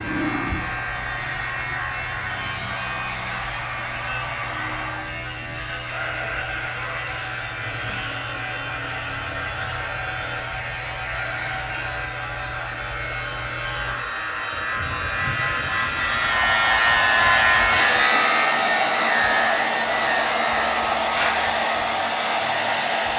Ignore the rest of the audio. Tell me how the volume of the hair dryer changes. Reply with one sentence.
The volume of the hair dryer goes up.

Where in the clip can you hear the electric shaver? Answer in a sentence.
You can hear the electric shaver from 0.0 to 23.1 s.